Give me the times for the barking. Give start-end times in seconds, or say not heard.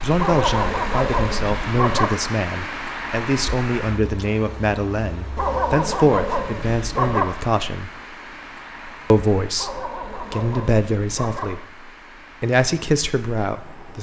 0.1-2.1, 5.3-7.2, 9.6-11.4.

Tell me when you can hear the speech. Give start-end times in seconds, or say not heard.
0.0-7.9, 9.1-13.9.